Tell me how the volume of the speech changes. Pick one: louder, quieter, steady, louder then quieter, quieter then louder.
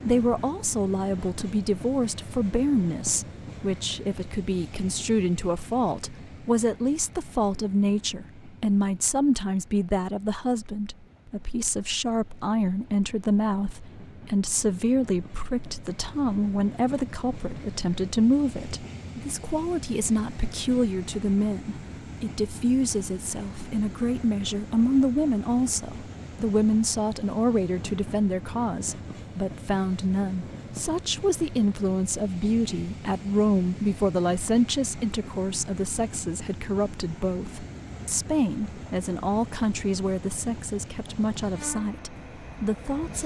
steady.